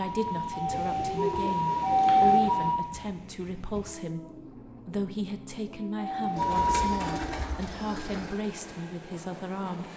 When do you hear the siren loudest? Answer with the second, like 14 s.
2 s.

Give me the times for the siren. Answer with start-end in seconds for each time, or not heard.
0.0-2.8, 6.0-7.9.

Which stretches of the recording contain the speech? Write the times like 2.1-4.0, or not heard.
0.0-9.9.